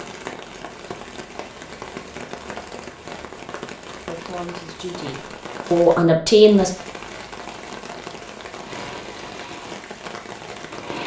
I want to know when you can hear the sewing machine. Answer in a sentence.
You can hear the sewing machine from 8.6 to 11.0 s.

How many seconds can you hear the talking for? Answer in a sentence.
You can hear the talking for 3 seconds altogether.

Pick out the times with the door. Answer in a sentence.
The door can't be heard in this clip.